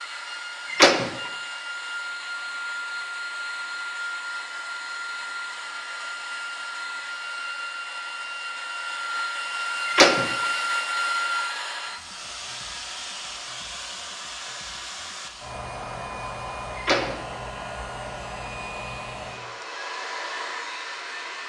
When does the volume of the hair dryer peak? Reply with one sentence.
The loudest moment of the hair dryer is at 11 seconds.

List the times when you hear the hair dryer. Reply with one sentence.
You can hear the hair dryer from 0.0 to 21.4 s.